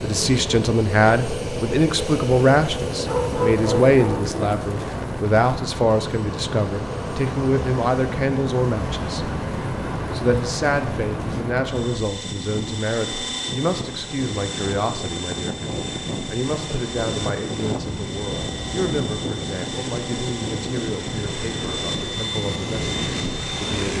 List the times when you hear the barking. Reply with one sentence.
You can hear the barking from 3.0 to 4.3 s.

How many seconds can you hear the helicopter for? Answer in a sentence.
The helicopter can be heard for 24 seconds in total.